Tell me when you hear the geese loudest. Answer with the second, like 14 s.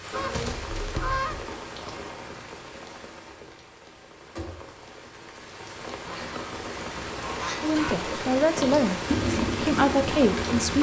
1 s.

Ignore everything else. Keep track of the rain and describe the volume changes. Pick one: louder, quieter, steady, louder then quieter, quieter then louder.
quieter then louder.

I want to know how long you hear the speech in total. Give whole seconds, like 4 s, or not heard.
3 s.